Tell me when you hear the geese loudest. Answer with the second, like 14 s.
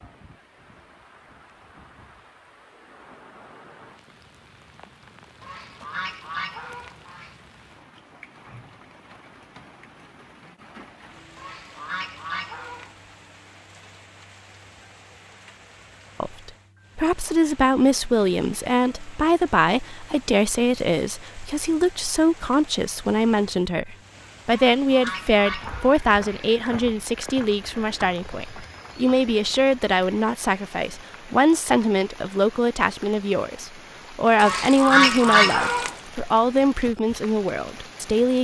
35 s.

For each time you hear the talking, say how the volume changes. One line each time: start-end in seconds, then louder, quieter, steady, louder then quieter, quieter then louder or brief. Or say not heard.
16.2-38.3 steady.